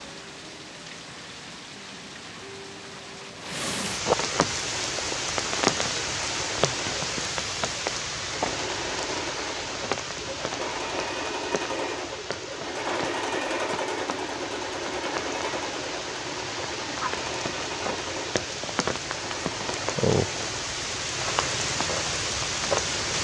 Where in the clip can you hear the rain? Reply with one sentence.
The rain can be heard from 0.0 to 23.1 s.